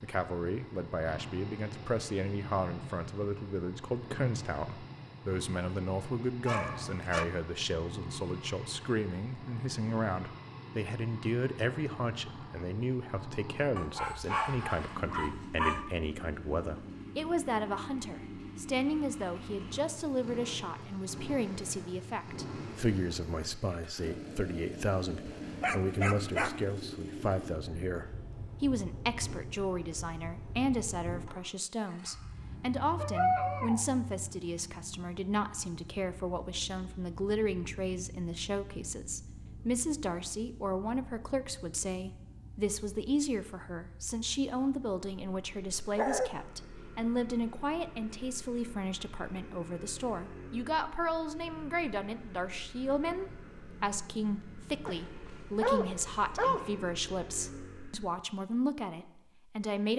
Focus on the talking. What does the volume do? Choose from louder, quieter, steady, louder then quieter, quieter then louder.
steady.